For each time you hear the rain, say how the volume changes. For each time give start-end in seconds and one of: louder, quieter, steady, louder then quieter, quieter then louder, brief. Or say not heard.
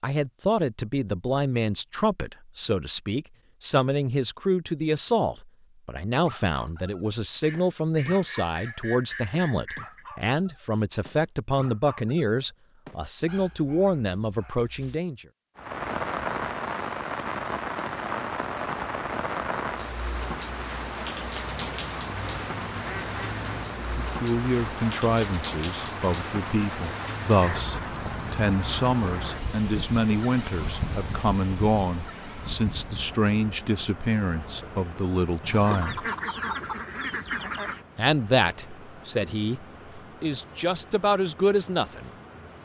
15.6-42.6 quieter.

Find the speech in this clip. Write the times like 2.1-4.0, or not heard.
0.0-15.2, 23.8-36.0, 38.0-42.1.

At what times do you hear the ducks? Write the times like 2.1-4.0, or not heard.
7.1-10.1, 21.4-24.0, 35.4-37.9.